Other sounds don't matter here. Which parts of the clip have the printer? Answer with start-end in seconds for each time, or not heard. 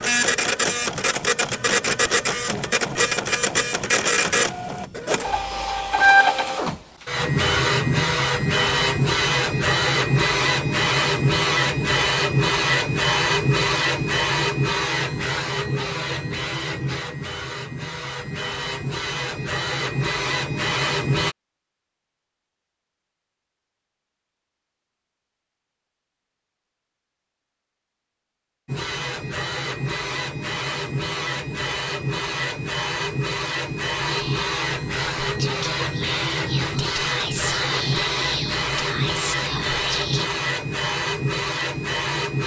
0.0-21.4, 28.6-42.4.